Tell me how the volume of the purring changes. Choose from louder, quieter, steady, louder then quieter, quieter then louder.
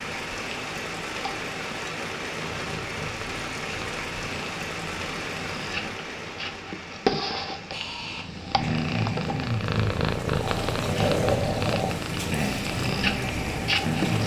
louder.